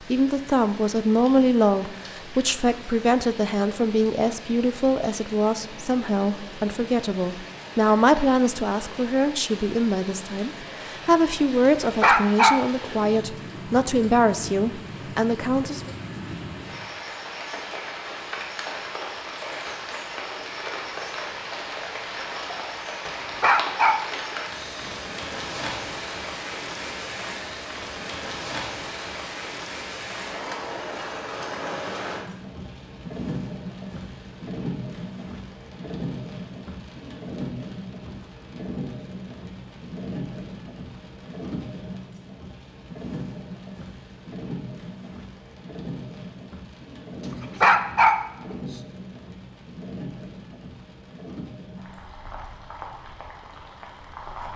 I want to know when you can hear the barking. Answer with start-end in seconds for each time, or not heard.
11.7-12.9, 23.1-24.9, 47.2-48.5.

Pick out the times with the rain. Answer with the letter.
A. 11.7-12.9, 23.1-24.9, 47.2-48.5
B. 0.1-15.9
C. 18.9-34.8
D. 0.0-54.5
D.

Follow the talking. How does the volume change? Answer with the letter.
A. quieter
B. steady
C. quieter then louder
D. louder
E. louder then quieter
B.